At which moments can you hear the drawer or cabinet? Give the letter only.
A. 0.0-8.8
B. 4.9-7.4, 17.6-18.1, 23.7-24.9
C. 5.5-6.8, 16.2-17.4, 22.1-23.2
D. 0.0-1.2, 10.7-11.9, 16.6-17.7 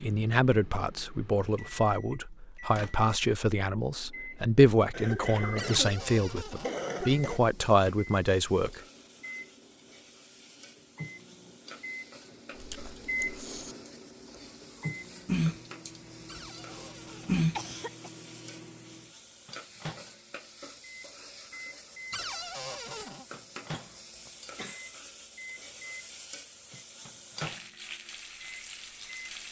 C.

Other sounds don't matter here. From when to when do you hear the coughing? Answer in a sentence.
You can hear the coughing from 4.9 to 7.4 s, from 17.6 to 18.1 s and from 23.7 to 24.9 s.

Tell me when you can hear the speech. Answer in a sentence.
You can hear the speech from 0.0 to 8.8 s.